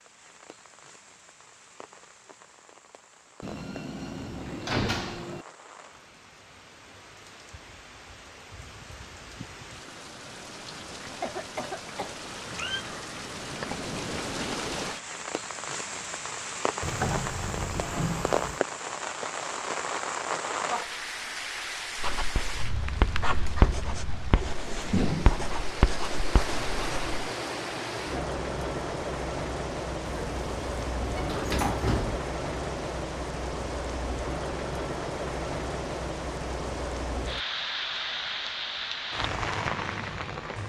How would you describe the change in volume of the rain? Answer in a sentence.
The volume of the rain goes up.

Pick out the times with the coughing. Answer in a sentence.
You can hear the coughing from 11.2 to 12.2 s and from 23.2 to 23.8 s.